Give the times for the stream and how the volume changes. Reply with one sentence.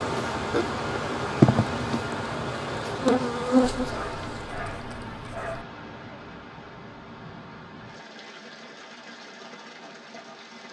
The stream can be heard from 0.0 to 10.6 s, getting quieter.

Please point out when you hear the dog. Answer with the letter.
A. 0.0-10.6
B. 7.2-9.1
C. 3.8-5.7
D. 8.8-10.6
C.